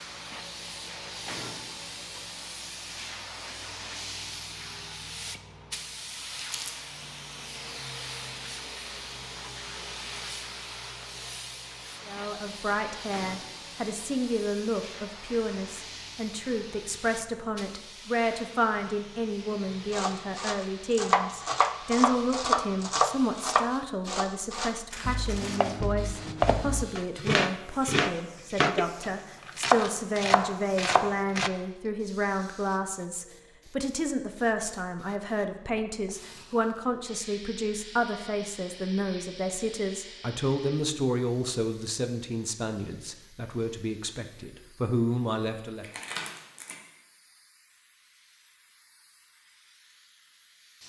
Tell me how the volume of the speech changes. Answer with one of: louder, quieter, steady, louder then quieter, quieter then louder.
steady.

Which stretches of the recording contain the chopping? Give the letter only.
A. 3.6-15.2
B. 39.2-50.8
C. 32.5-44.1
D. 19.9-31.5
D.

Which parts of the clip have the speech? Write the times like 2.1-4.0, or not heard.
12.1-45.9.